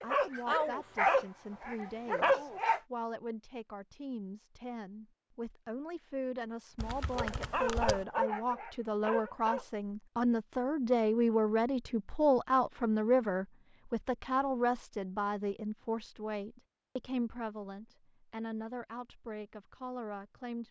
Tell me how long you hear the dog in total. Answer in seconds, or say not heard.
5 s.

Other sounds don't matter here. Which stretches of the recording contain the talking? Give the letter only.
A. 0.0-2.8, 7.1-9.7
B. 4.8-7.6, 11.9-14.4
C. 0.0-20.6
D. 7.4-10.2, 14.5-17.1
C.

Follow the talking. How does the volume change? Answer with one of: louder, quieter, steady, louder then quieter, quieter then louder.
louder then quieter.